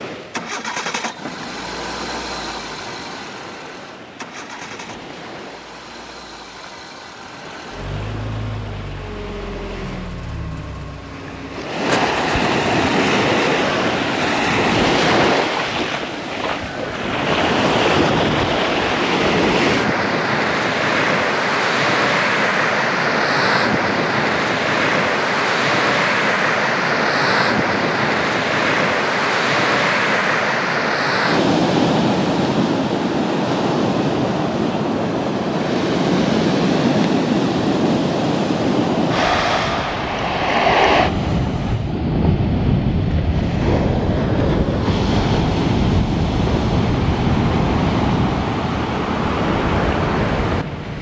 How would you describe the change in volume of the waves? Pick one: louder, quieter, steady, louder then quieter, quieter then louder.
louder.